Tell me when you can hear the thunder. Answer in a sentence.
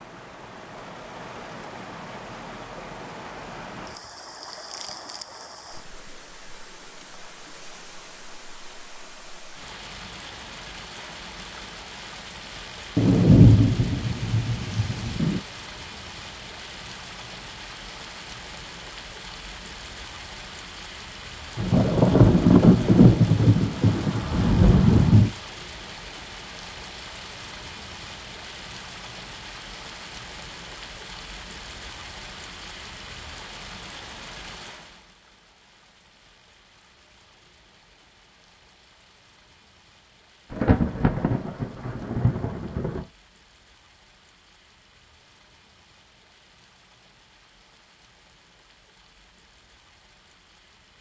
The thunder can be heard from 12.9 to 15.4 s, from 21.6 to 25.3 s and from 40.5 to 43.0 s.